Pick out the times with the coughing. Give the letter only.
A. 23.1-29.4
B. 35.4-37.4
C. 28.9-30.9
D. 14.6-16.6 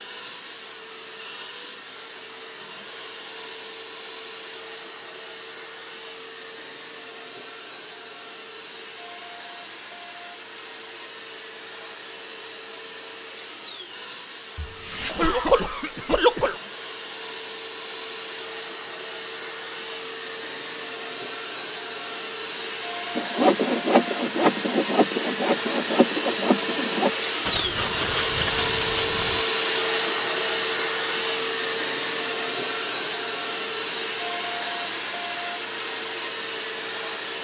D.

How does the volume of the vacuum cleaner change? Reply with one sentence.
The volume of the vacuum cleaner goes up.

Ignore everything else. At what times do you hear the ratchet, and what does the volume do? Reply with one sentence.
The ratchet can't be heard in this clip.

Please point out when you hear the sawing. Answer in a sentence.
You can hear the sawing from 23.1 to 29.4 s.